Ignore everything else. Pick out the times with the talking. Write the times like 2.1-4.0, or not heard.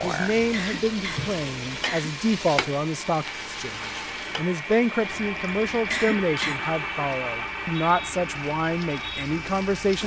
0.0-10.0.